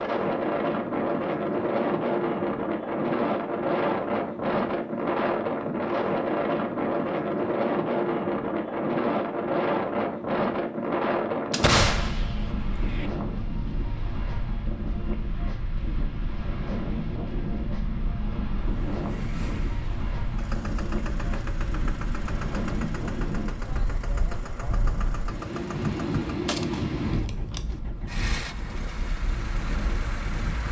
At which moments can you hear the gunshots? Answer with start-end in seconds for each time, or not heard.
11.5-13.1, 26.4-27.8.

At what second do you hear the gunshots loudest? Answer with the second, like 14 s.
12 s.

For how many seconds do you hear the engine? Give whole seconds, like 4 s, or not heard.
12 s.